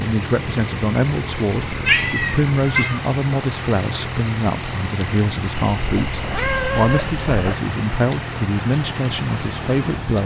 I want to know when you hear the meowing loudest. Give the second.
2 s.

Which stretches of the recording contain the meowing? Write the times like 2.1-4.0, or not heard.
1.5-3.0, 5.7-7.5.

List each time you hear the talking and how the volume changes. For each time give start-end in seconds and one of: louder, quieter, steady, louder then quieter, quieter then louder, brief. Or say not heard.
0.0-10.2 steady.